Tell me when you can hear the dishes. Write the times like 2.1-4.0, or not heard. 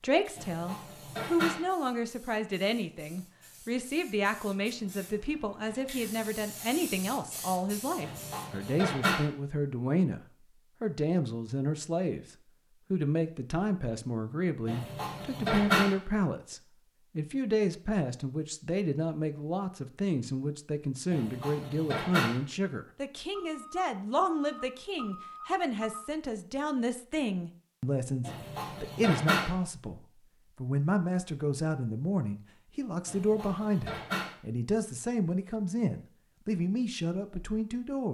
0.3-1.6, 8.0-9.2, 14.7-15.9, 21.1-22.4, 28.2-29.5, 33.0-34.4.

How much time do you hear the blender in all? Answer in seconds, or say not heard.
not heard.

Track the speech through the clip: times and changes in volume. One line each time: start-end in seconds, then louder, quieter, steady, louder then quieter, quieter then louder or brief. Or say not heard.
0.0-38.1 steady.